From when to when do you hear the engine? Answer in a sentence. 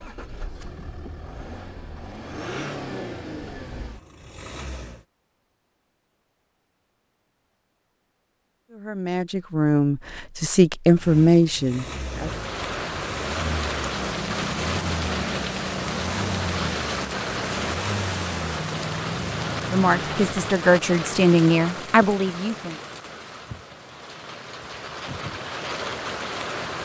The engine can be heard from 0.0 to 5.0 s and from 10.9 to 20.2 s.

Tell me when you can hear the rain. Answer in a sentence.
The rain can be heard from 12.1 to 26.8 s.